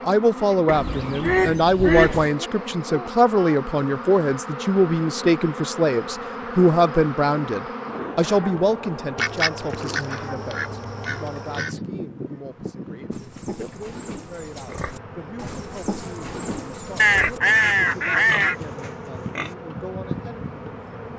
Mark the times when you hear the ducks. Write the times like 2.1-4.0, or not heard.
0.7-2.3, 9.2-11.8, 16.9-18.6.